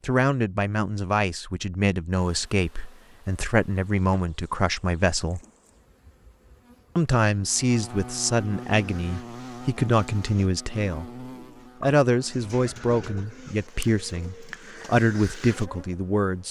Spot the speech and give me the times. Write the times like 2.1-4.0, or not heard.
0.0-5.4, 7.0-16.4.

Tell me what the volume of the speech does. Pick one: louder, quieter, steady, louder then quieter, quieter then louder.
steady.